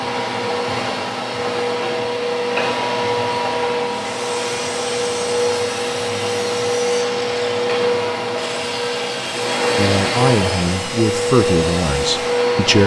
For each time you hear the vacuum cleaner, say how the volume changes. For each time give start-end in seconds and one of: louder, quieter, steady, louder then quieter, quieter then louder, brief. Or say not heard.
0.0-12.8 steady.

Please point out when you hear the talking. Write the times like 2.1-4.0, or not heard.
9.8-12.8.